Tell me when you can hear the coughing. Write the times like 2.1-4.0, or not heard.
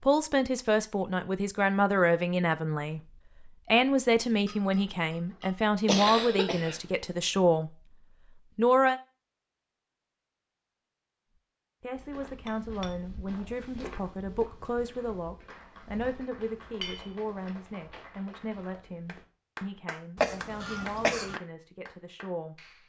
5.8-6.8, 20.1-21.4.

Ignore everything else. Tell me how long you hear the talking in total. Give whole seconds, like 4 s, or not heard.
19 s.